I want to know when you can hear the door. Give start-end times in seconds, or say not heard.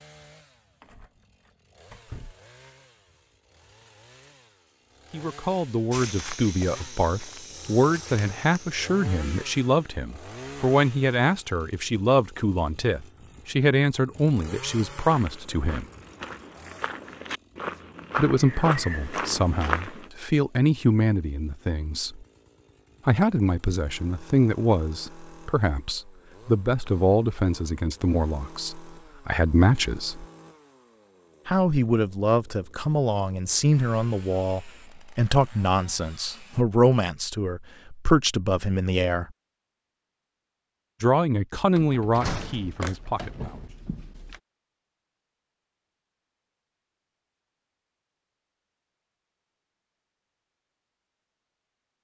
0.8-2.4, 41.8-44.4.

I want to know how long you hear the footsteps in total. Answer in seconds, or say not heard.
8 s.